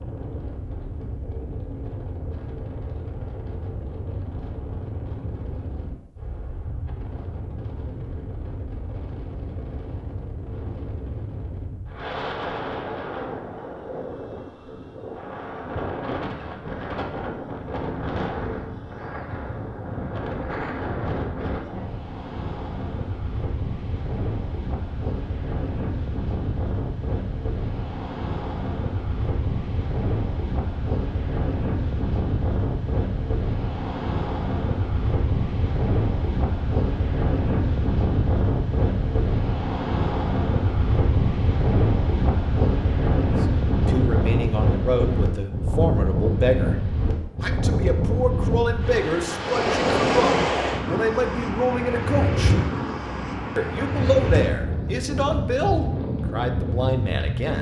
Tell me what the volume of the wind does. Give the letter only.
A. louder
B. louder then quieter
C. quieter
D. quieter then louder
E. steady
A.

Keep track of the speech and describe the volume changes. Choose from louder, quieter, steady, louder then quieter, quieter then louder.
steady.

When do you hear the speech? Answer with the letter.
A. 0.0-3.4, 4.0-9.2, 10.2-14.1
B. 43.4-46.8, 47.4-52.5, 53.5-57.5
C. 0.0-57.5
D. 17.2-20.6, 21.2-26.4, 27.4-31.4
B.